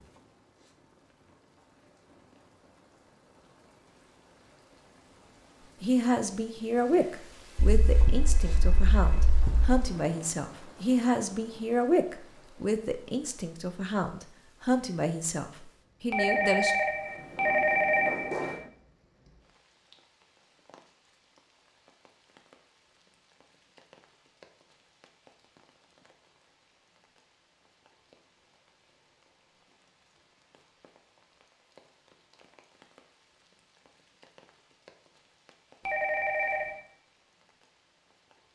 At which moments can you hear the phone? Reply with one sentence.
You can hear the phone from 7.5 to 9.8 s, from 16.1 to 18.7 s and from 35.9 to 36.8 s.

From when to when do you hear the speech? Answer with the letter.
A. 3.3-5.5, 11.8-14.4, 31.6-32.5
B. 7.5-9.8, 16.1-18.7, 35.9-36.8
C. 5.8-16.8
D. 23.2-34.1
C.